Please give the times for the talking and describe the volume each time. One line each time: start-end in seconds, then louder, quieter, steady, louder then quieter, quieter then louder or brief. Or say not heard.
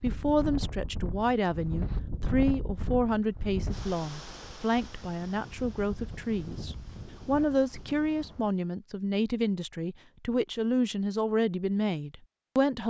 0.0-12.8 steady.